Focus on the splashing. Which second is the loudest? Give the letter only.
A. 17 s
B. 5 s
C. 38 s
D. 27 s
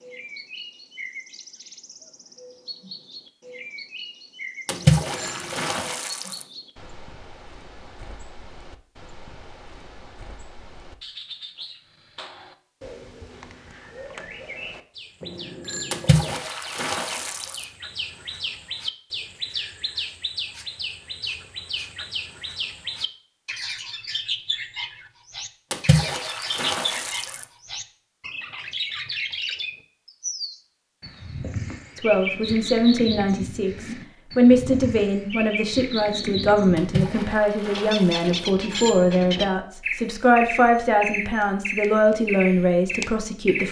B.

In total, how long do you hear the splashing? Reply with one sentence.
You can hear the splashing for 7 seconds altogether.